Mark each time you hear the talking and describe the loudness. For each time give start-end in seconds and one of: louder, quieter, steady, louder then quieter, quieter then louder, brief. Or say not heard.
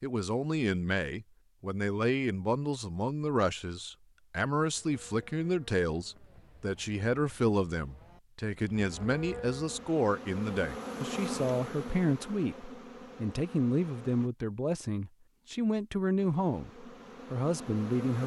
0.0-18.2 steady.